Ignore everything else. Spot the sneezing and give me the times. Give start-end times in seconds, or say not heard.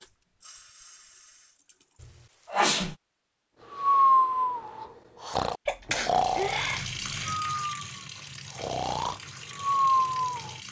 2.0-3.0, 5.7-7.3.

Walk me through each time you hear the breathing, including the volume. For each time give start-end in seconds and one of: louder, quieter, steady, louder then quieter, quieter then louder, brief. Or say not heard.
3.7-10.5 quieter then louder.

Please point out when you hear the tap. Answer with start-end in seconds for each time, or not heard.
0.0-2.0, 6.1-10.6.